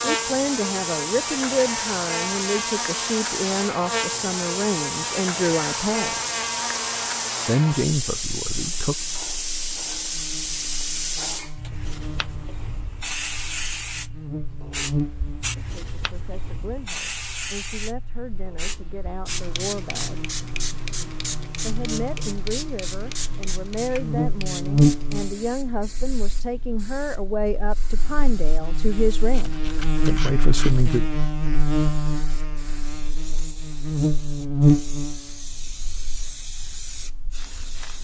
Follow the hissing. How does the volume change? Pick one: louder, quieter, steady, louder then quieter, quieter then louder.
quieter.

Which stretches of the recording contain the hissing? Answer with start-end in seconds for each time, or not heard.
0.0-37.9.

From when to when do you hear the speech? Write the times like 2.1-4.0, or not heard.
0.0-6.2, 7.5-8.9, 15.6-20.2, 21.6-31.1.